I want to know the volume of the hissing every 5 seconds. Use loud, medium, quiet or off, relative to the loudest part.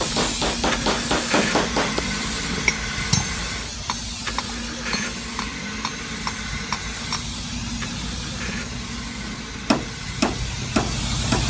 loud, medium, loud.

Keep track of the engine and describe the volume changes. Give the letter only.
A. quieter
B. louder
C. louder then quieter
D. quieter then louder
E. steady
A.